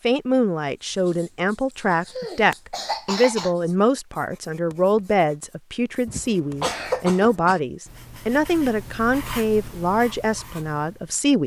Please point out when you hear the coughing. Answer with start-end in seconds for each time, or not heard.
1.9-3.5, 6.0-7.6.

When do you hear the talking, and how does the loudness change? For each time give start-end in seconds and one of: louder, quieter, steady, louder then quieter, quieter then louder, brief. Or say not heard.
0.0-11.4 steady.